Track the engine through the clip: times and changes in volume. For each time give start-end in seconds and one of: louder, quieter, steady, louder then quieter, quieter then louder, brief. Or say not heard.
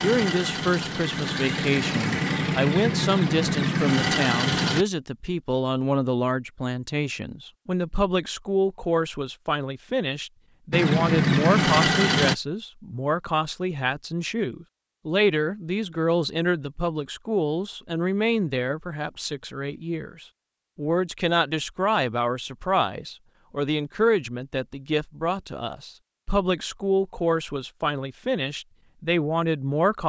0.0-4.8 louder
10.7-12.3 brief.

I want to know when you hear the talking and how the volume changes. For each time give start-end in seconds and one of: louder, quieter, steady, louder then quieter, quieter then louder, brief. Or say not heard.
0.0-30.0 steady.